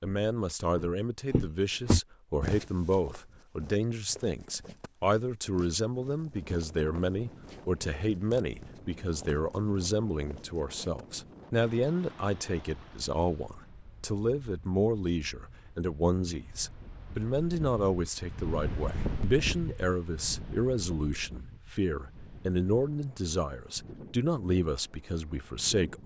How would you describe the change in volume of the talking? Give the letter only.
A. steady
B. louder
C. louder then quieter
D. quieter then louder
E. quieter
A.